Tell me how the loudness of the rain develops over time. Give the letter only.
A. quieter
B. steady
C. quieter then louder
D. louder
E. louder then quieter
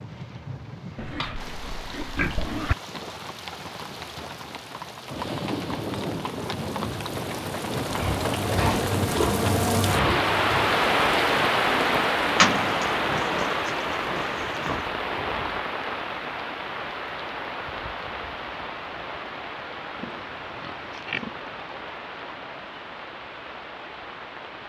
E.